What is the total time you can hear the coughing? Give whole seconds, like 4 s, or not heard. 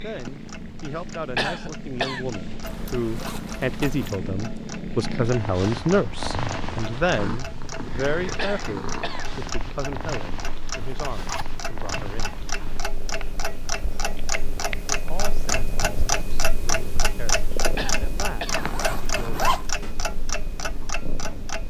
3 s.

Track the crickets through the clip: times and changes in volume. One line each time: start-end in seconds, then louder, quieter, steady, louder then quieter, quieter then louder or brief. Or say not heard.
not heard.